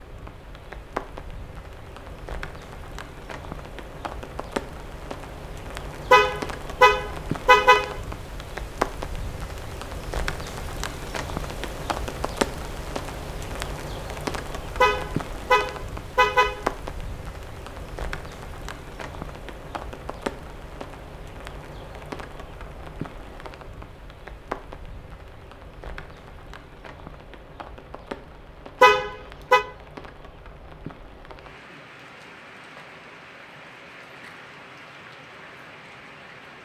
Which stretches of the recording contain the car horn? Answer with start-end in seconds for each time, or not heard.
6.1-8.0, 14.8-16.6, 28.8-29.6.